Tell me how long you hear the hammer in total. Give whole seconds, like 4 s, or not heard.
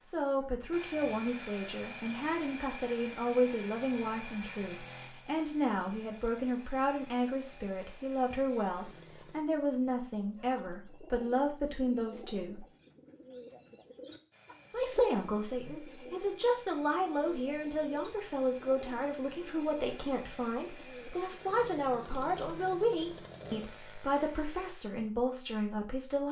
not heard.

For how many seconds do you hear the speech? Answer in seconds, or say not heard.
24 s.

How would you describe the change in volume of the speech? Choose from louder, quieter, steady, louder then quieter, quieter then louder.
steady.